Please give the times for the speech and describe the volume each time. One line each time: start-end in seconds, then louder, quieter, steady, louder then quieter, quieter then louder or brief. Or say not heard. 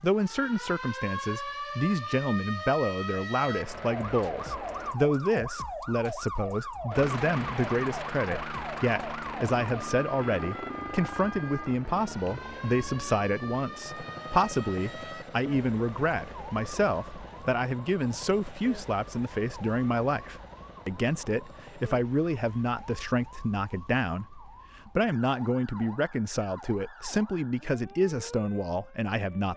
0.0-29.5 steady.